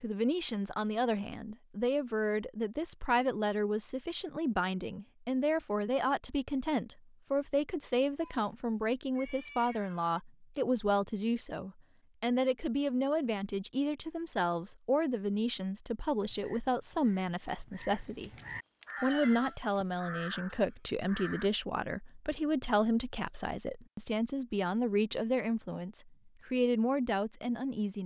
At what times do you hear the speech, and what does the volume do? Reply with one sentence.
The speech can be heard from 0.0 to 18.3 s, at a steady volume; and from 19.0 to 28.0 s, at a steady volume.